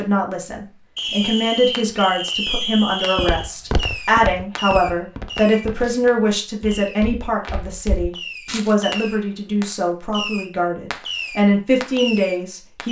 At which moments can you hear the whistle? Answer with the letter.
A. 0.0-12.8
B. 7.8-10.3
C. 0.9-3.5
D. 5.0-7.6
C.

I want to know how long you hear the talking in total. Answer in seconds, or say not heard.
13 s.